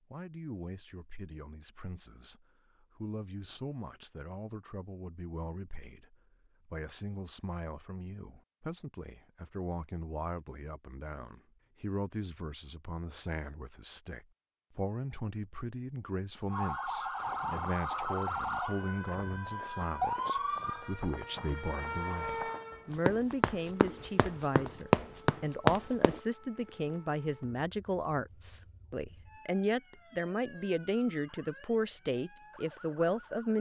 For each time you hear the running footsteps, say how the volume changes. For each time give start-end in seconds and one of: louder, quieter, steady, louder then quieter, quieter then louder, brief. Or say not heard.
17.1-26.2 louder.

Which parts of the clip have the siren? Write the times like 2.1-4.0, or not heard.
16.5-33.5.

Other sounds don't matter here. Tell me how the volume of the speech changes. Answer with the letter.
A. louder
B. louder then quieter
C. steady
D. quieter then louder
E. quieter
A.